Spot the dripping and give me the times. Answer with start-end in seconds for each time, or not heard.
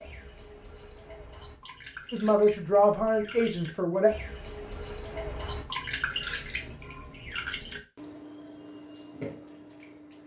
0.0-10.2.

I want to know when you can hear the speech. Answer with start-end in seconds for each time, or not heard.
2.1-4.1.